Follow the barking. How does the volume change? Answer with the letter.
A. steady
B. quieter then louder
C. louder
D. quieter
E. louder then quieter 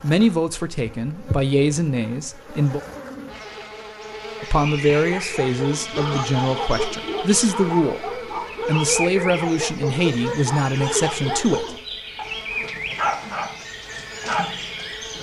A.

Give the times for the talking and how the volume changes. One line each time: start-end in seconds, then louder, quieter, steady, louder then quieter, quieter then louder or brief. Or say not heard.
0.0-2.8 brief
4.4-11.8 steady.